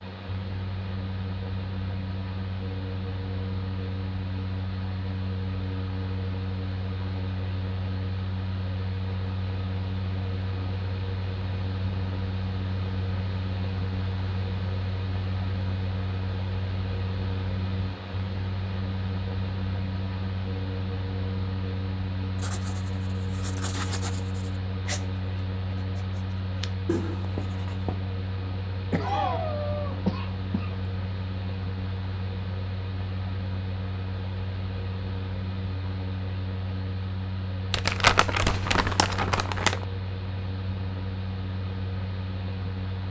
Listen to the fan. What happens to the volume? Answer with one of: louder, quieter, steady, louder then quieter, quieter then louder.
steady.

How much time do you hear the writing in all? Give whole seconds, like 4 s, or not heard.
6 s.